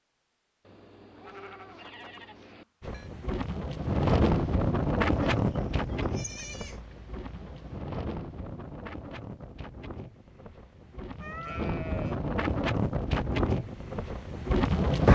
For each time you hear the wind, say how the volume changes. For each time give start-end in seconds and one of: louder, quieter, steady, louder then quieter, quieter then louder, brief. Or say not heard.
2.8-15.0 quieter then louder.